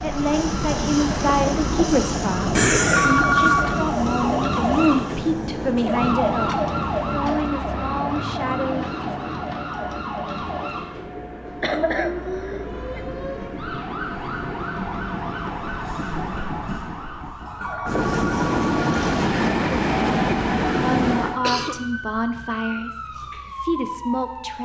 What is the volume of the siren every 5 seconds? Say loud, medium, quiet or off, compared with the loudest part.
loud, loud, medium, medium, medium.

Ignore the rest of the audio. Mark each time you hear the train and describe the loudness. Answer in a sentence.
You can hear the train from 0.0 to 21.4 s, getting quieter then louder.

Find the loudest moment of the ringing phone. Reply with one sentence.
The volume of the ringing phone peaks at 3 seconds.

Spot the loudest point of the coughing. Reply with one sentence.
The loudest moment of the coughing is at 3 seconds.